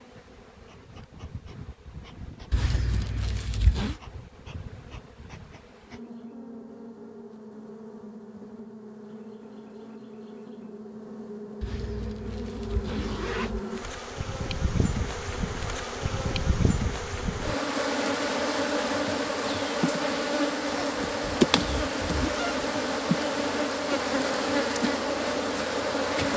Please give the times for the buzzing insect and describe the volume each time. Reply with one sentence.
You can hear the buzzing insect from 0.0 to 26.3 s, getting louder.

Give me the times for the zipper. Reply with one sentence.
The zipper can be heard from 2.5 to 4.0 s, from 11.6 to 13.6 s and from 20.6 to 22.7 s.